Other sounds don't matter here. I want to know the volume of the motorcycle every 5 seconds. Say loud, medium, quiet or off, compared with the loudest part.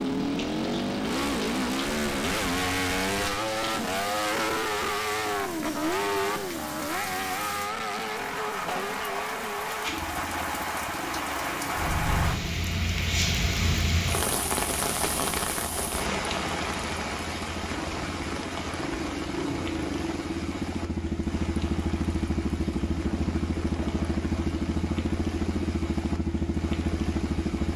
loud, loud, quiet, medium, loud, loud.